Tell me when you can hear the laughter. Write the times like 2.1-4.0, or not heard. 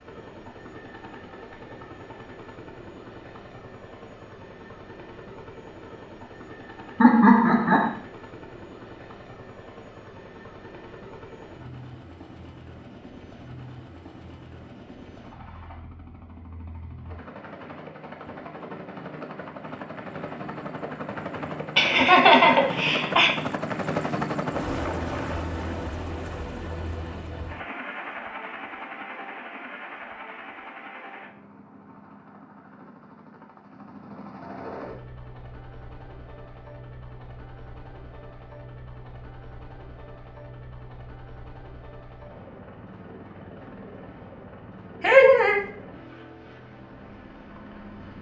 7.0-7.9, 21.8-23.3, 45.0-45.6.